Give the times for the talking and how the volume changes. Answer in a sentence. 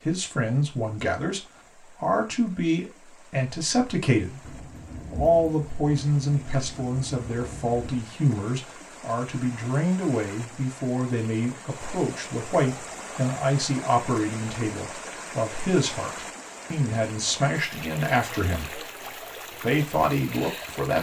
You can hear the talking from 0.0 to 18.9 s, at a steady volume; and briefly from 19.6 to 20.9 s.